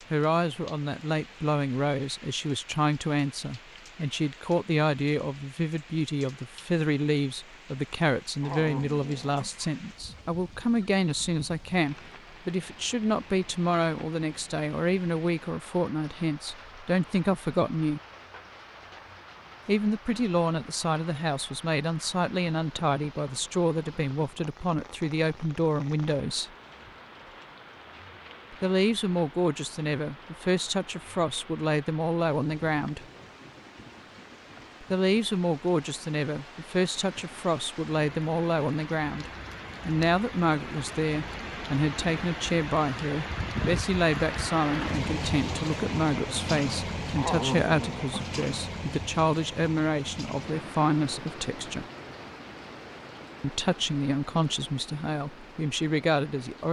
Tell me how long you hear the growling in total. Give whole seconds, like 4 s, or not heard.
3 s.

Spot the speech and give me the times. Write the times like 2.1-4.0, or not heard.
0.1-18.0, 19.6-26.5, 28.5-33.0, 34.8-51.9, 53.4-56.6.